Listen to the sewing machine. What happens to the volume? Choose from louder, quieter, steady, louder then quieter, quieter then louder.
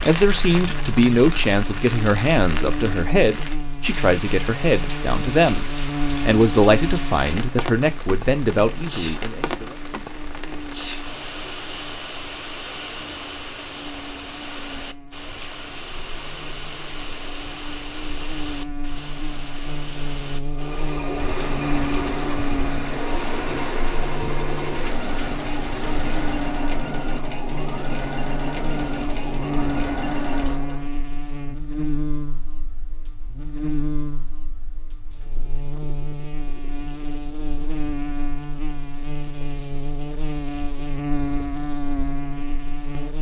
steady.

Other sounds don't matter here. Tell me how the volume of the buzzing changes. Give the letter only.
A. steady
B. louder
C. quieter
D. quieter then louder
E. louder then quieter
D.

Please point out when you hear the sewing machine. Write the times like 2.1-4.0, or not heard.
20.4-30.9.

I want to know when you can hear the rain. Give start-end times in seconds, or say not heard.
0.0-26.8.